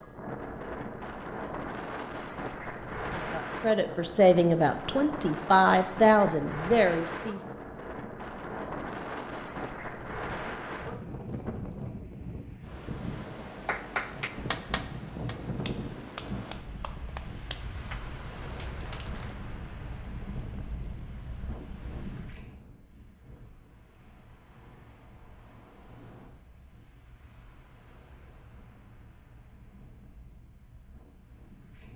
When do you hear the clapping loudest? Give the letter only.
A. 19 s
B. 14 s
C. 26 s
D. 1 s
B.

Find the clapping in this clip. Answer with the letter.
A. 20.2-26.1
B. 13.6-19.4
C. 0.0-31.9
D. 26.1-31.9
B.